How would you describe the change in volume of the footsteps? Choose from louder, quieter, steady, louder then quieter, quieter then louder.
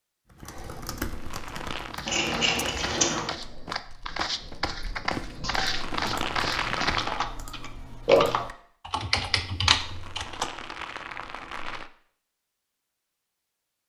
louder.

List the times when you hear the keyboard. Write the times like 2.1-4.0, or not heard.
0.3-10.5.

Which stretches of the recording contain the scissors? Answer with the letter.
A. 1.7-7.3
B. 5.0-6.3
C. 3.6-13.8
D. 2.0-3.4
D.